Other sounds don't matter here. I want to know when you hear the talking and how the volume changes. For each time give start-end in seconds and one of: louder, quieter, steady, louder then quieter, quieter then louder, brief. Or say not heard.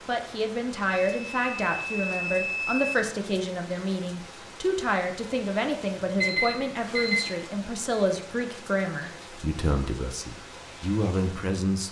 0.1-11.8 steady.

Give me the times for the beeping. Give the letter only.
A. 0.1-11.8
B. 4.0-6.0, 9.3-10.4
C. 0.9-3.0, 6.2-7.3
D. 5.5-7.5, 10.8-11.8
C.